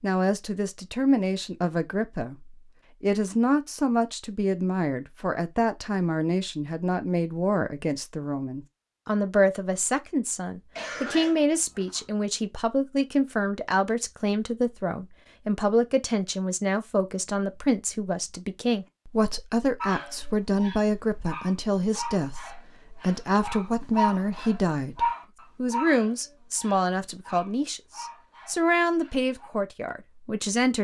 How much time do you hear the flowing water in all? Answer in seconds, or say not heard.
not heard.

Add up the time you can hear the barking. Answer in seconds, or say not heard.
10 s.